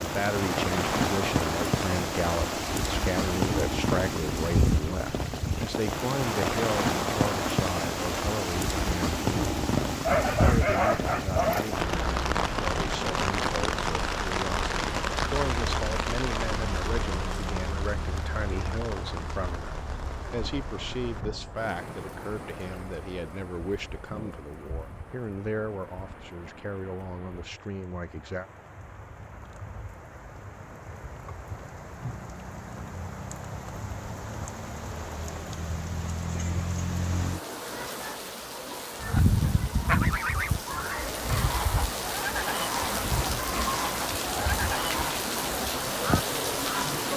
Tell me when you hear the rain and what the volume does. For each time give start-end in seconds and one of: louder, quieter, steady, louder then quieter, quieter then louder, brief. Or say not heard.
0.0-47.1 quieter then louder.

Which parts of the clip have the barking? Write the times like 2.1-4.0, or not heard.
10.0-11.8.